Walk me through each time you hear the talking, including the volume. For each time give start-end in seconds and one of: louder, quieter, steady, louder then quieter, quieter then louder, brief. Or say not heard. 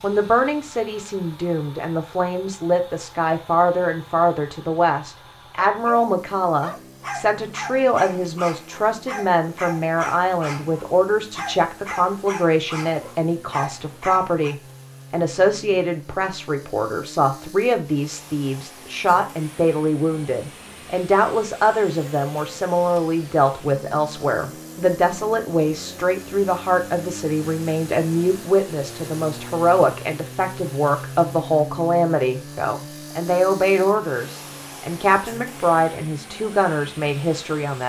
0.0-37.8 steady.